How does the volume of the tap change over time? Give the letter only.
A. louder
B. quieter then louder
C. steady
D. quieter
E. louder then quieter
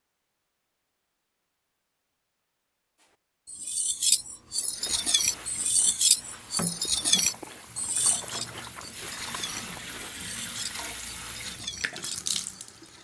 A.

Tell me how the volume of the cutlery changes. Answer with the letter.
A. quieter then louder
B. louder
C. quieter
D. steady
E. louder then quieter
C.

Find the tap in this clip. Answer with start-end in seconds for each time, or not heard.
4.7-12.9.